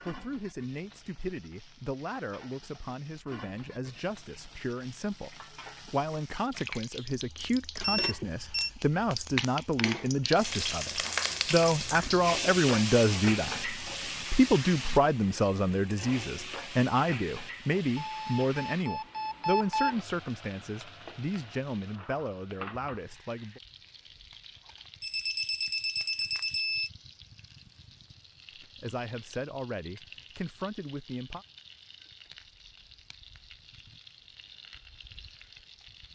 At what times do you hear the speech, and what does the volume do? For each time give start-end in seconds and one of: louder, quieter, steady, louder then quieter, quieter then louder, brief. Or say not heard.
0.1-23.6 louder then quieter
28.6-31.4 brief.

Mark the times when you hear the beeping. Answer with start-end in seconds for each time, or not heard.
7.8-8.7, 17.9-19.9, 25.0-26.9.